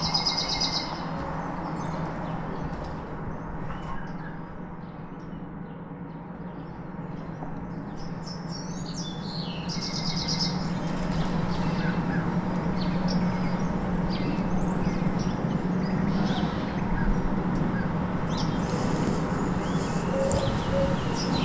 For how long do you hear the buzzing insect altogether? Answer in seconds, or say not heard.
3 s.